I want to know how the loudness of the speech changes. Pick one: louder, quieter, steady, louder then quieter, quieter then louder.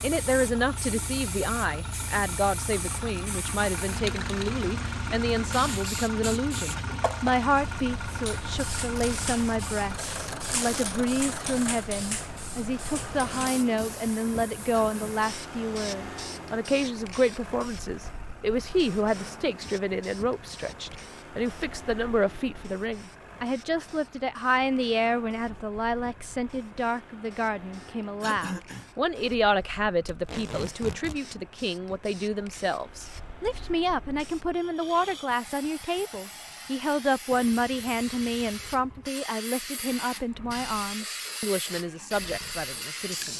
steady.